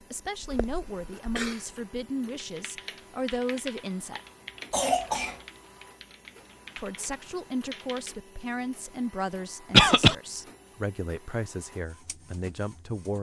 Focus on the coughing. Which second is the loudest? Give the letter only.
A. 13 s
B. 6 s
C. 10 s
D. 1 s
C.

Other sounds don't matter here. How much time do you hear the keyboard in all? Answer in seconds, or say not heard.
6 s.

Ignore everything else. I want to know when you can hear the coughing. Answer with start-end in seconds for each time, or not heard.
0.4-1.6, 4.7-5.4, 9.7-10.2.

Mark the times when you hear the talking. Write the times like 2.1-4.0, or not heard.
0.1-4.2, 6.8-13.1.